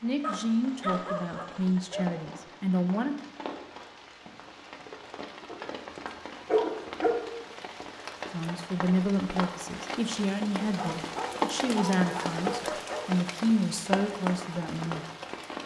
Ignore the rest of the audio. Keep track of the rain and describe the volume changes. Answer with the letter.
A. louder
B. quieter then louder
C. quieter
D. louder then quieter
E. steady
A.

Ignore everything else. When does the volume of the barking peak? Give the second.
7 s.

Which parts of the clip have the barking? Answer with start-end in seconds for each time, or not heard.
0.2-2.0, 5.5-7.2, 10.6-13.2.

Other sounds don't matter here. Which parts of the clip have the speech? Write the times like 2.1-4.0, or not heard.
0.0-3.1, 8.3-15.1.